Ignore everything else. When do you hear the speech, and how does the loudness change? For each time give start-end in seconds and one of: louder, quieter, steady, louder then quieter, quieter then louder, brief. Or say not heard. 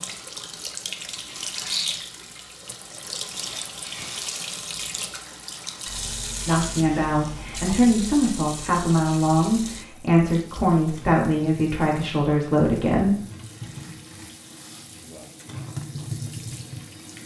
6.5-13.2 steady.